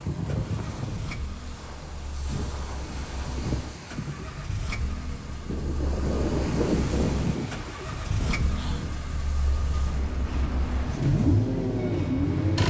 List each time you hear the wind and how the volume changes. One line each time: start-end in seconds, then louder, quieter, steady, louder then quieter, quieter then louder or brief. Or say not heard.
0.0-12.6 louder then quieter.